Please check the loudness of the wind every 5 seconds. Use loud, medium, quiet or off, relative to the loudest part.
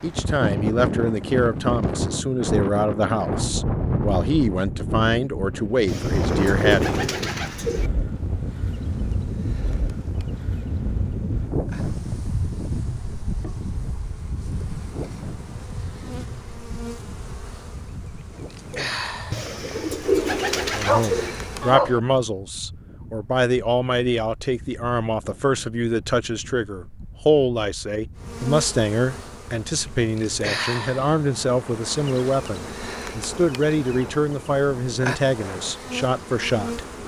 loud, loud, medium, quiet, quiet, quiet, quiet, quiet.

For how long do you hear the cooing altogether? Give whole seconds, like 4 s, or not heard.
4 s.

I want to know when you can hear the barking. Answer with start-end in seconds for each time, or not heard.
20.7-22.0.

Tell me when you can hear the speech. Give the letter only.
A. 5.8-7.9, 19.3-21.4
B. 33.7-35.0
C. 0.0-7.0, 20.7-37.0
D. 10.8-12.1
C.